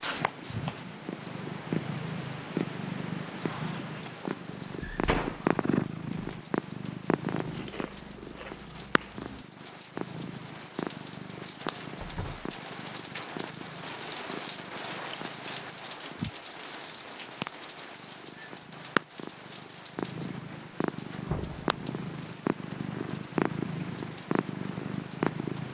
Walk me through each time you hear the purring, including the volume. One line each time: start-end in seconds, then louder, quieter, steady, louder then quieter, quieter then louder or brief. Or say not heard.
0.0-25.6 quieter then louder.